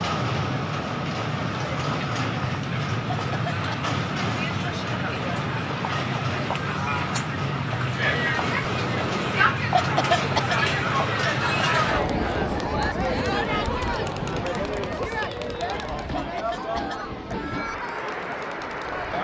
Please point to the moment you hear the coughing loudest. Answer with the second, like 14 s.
10 s.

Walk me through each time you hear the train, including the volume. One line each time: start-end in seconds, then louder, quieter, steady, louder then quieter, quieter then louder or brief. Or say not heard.
0.0-19.1 quieter.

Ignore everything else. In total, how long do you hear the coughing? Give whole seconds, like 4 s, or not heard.
3 s.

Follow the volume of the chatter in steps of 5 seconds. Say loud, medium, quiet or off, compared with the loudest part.
medium, loud, loud, medium.